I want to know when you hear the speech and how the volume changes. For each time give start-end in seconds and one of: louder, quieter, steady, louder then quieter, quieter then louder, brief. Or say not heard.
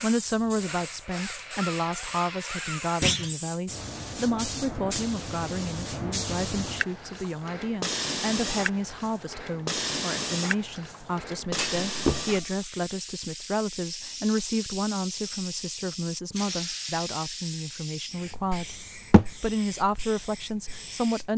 0.0-21.3 steady.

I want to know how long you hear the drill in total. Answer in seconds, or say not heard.
3 s.